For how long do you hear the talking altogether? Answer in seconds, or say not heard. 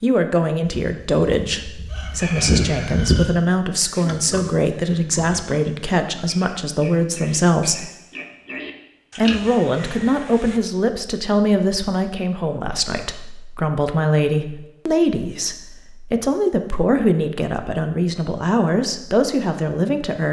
19 s.